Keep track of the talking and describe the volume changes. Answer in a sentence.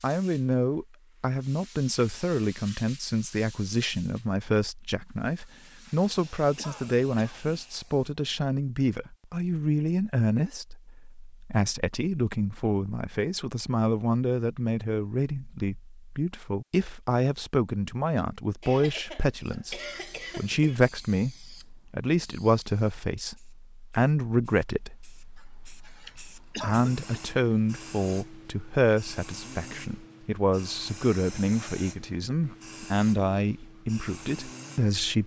The volume of the talking stays about the same.